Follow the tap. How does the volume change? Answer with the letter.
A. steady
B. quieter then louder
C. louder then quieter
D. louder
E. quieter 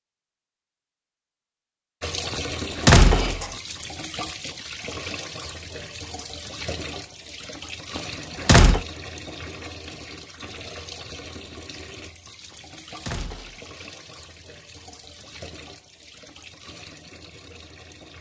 E.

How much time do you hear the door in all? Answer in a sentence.
The door can be heard for 3 seconds in total.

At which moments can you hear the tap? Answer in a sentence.
You can hear the tap from 2.0 to 18.1 s.